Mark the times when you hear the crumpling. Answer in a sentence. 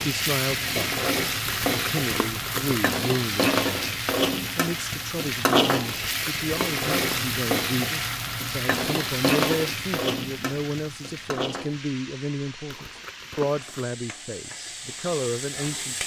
You can hear the crumpling from 1.4 to 3.0 s, from 5.8 to 7.3 s and from 12.7 to 13.9 s.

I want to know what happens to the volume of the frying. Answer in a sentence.
The loudness of the frying goes down.